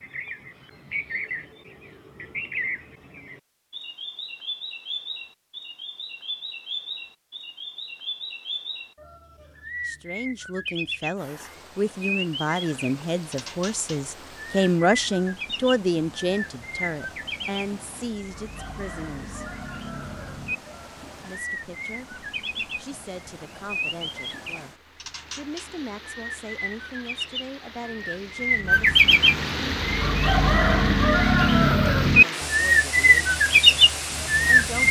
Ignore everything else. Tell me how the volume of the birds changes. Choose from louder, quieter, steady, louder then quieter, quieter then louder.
louder.